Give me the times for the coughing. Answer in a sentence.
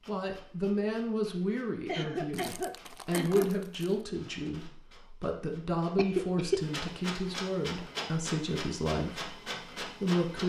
You can hear the coughing from 1.9 to 3.5 s and from 6.0 to 6.9 s.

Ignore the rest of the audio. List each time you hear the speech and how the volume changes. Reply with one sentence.
The speech can be heard from 0.1 to 10.4 s, at a steady volume.